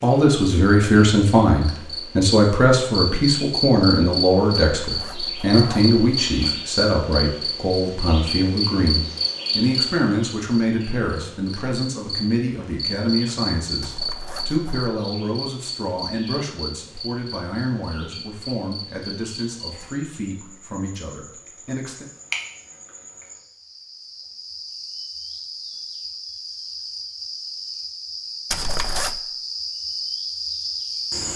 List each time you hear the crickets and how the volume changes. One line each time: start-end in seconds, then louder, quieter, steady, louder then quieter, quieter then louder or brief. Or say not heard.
0.0-31.3 quieter then louder.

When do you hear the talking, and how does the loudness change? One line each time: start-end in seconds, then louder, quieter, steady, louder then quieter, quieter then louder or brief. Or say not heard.
0.0-22.1 quieter.